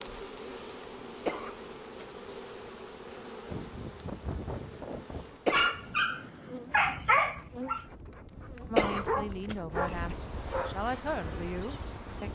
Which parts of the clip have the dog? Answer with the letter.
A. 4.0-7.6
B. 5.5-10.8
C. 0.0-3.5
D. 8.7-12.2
B.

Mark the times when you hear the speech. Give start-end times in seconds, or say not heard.
8.7-12.2.